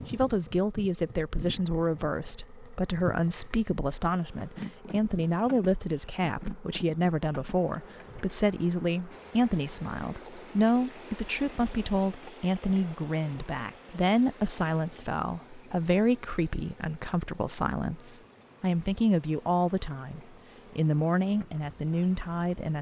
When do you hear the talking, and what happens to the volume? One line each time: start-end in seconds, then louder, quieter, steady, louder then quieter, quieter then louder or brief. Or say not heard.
0.1-22.7 steady.